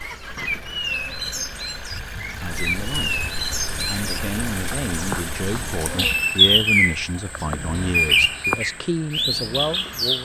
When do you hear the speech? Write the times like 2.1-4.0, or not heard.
2.2-10.1.